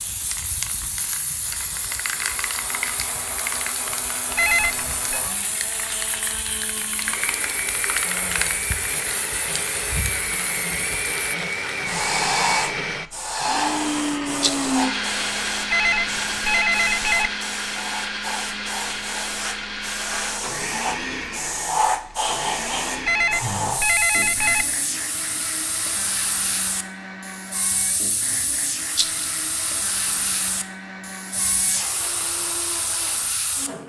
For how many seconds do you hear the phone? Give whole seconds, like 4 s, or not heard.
4 s.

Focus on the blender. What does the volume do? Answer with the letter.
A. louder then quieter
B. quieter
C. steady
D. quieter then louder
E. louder
A.